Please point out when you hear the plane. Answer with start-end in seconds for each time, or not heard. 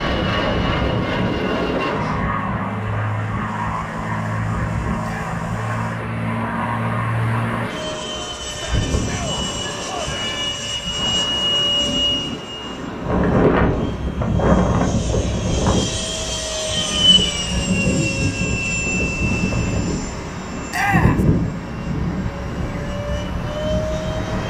0.0-24.4.